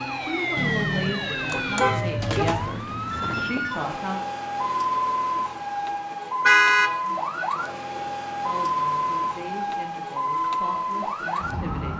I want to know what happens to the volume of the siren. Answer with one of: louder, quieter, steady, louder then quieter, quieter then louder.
steady.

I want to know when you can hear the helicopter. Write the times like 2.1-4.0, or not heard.
not heard.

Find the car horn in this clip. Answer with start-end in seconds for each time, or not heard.
0.6-2.6, 6.5-7.0.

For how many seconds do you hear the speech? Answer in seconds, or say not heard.
9 s.